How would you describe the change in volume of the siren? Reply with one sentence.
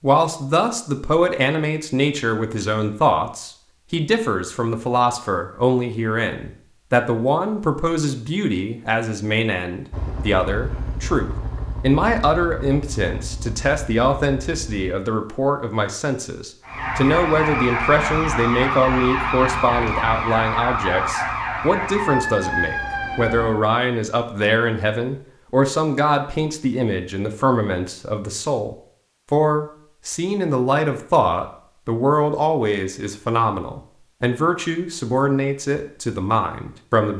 The loudness of the siren stays about the same.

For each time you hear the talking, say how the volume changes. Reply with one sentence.
The talking can be heard from 0.0 to 37.1 s, at a steady volume.